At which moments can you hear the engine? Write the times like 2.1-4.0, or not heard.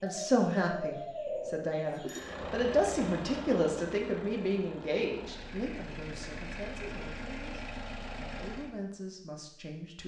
2.1-8.8.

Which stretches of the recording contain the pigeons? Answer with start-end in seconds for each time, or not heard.
0.0-2.3.